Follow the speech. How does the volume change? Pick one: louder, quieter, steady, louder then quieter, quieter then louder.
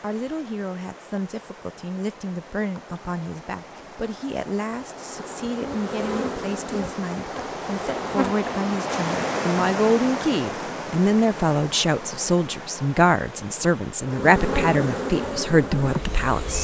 louder.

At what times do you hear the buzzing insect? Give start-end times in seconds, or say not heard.
4.9-8.4, 14.0-16.5.